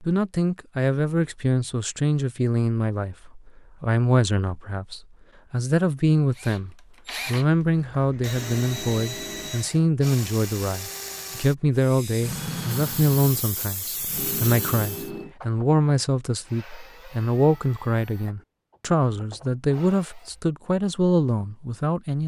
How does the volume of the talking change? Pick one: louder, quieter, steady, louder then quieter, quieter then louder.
steady.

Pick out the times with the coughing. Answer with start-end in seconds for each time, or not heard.
not heard.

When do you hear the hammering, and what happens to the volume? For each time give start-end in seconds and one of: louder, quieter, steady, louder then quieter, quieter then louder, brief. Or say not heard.
not heard.